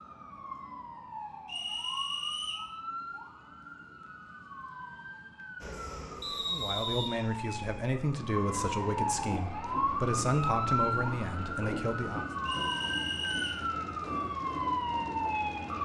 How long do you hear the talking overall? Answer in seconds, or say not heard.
6 s.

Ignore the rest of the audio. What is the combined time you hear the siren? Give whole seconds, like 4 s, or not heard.
16 s.